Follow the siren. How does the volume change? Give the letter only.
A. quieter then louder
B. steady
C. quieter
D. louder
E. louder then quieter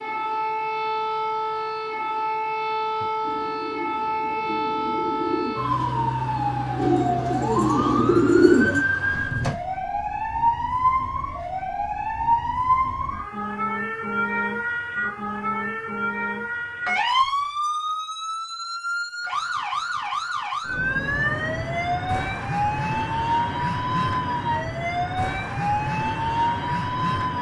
B.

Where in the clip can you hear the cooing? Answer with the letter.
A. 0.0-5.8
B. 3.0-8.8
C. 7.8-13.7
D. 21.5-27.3
B.